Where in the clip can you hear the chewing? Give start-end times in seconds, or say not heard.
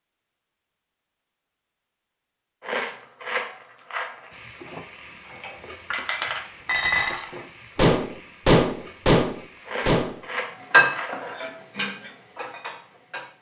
2.6-4.3, 9.7-11.3.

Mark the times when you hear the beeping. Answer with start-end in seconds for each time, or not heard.
not heard.